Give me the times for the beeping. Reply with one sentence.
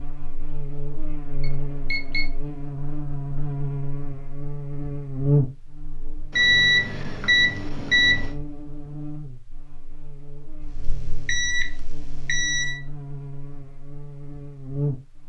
The beeping can be heard from 1.4 to 2.2 s, from 6.3 to 8.3 s and from 10.6 to 12.8 s.